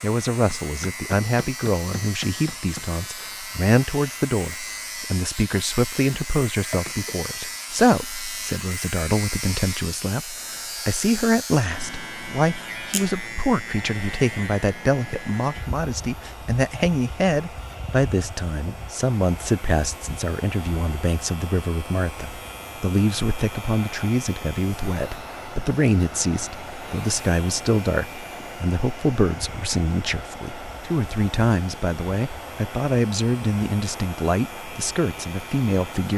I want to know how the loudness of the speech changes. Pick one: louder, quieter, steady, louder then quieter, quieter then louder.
steady.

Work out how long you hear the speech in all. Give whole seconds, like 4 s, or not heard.
36 s.